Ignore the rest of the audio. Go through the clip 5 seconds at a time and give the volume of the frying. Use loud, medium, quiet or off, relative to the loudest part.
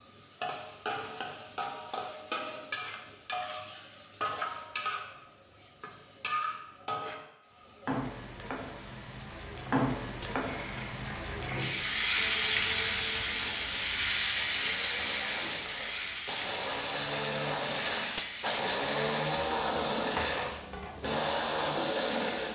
medium, medium, loud, medium, medium.